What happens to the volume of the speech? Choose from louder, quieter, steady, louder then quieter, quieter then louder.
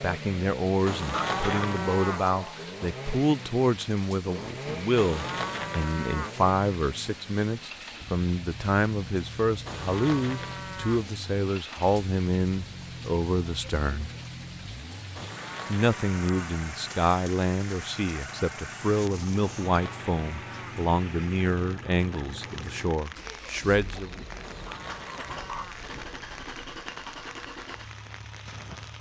steady.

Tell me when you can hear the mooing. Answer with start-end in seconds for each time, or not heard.
0.8-2.3, 5.0-6.4, 9.7-11.1, 15.2-16.4, 19.4-20.9, 24.4-25.9.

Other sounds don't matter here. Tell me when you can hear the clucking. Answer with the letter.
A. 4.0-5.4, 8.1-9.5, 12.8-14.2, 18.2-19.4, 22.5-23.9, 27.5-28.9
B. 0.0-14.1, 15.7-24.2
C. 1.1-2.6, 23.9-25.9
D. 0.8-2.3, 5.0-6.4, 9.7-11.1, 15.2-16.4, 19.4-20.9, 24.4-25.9
C.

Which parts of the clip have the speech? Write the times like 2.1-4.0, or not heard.
0.0-14.1, 15.7-24.2.